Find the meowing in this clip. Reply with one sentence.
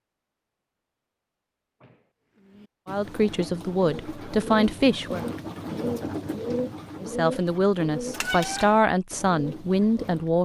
You can hear the meowing from 8.2 to 8.8 s.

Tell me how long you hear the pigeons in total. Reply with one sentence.
You can hear the pigeons for 8 seconds altogether.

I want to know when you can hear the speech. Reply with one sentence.
You can hear the speech from 2.9 to 5.2 s and from 7.0 to 10.4 s.